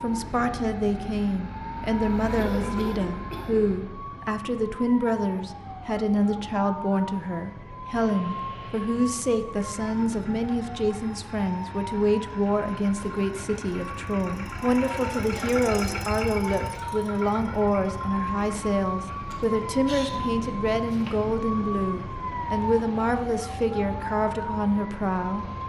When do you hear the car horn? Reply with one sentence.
You can't hear the car horn here.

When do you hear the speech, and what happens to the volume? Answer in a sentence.
You can hear the speech from 0.0 to 25.5 s, at a steady volume.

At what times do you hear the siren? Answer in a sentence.
The siren can be heard from 0.0 to 25.6 s.